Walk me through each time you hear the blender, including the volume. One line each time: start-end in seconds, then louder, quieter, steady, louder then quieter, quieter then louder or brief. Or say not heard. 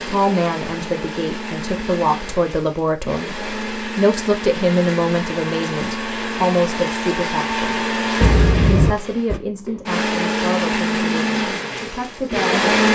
0.0-12.8 louder.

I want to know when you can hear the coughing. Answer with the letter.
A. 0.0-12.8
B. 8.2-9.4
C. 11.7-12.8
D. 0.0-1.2
B.